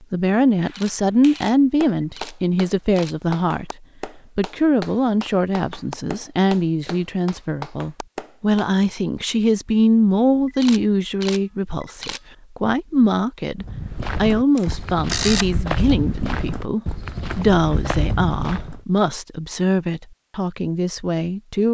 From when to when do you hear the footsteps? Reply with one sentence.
You can hear the footsteps from 13.6 to 18.8 s.